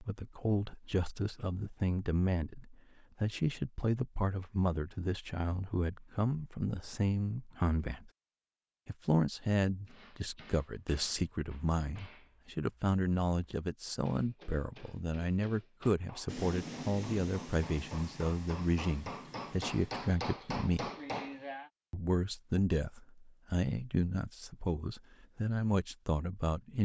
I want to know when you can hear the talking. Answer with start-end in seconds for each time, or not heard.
0.0-8.1, 8.8-20.9, 21.9-26.8.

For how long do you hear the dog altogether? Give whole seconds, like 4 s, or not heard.
not heard.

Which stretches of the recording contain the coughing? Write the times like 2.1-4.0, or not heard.
not heard.